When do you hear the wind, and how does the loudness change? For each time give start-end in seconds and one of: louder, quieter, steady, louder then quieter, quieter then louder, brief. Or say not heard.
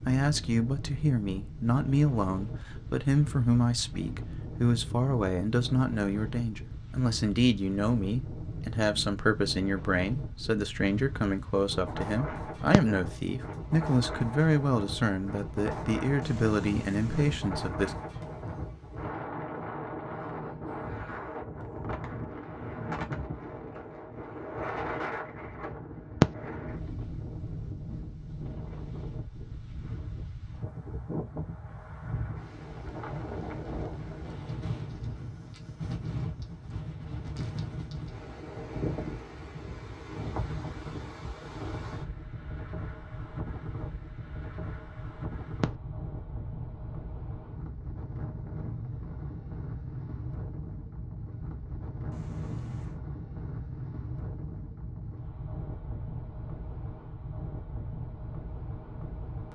0.0-59.5 steady.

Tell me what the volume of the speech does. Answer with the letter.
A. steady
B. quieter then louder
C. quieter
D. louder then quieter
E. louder
A.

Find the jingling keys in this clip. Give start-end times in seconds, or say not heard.
16.2-17.4, 52.1-53.0.